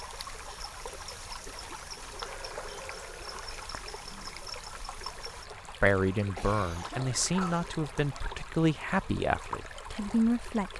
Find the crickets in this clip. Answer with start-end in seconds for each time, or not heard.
0.0-5.5.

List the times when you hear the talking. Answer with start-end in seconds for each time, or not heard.
5.8-10.7.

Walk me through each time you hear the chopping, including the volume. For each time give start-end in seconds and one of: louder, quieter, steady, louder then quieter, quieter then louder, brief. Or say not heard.
not heard.